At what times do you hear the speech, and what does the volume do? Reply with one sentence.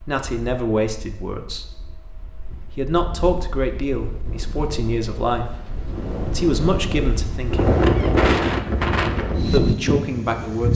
You can hear the speech from 0.1 to 7.8 s, at a steady volume; and briefly from 9.5 to 10.7 s.